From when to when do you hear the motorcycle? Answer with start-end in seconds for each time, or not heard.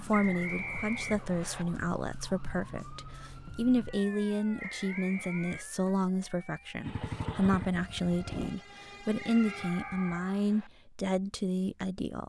6.8-8.6.